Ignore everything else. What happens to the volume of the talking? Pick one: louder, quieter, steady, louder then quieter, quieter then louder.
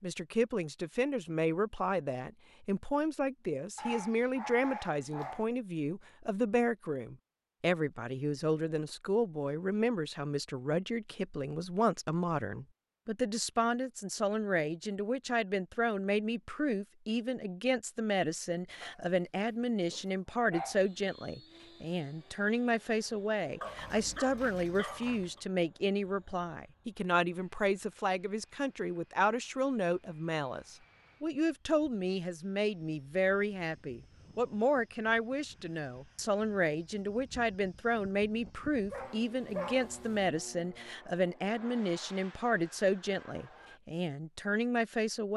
steady.